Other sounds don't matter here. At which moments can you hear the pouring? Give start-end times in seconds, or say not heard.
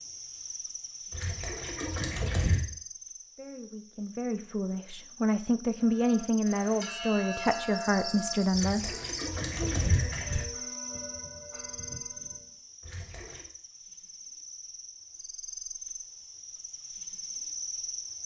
1.1-2.6, 8.5-10.4, 12.8-13.4.